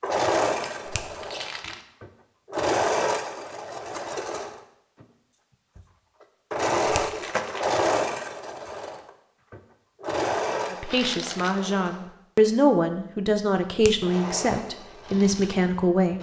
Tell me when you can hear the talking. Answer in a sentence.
The talking can be heard from 10.7 to 16.1 s.